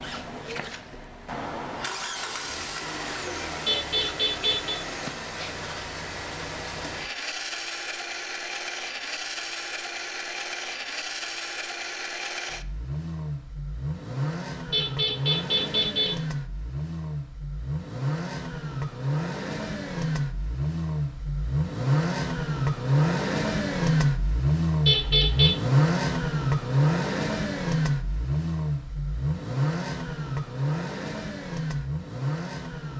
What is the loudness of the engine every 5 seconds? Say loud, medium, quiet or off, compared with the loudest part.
medium, medium, medium, medium, loud, loud, medium.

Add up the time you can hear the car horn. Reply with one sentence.
The car horn can be heard for 3 seconds in total.